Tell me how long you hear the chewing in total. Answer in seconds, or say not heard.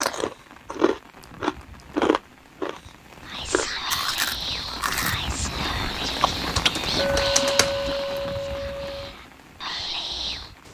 7 s.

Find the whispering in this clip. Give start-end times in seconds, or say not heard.
3.2-10.5.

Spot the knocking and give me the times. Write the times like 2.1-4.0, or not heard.
not heard.